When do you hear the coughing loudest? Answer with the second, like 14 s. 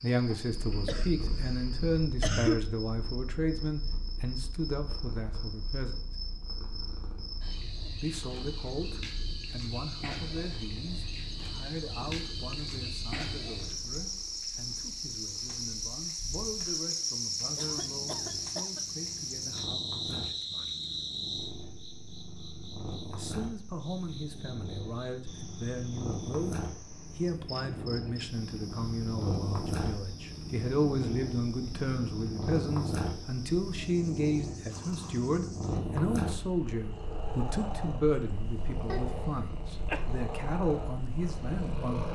2 s.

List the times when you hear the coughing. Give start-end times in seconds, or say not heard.
0.8-2.6, 17.6-18.8, 38.9-40.0.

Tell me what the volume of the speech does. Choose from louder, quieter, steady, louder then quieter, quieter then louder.
quieter then louder.